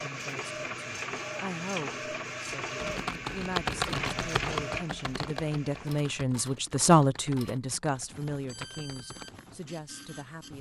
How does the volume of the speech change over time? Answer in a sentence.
The volume of the speech goes up, then down.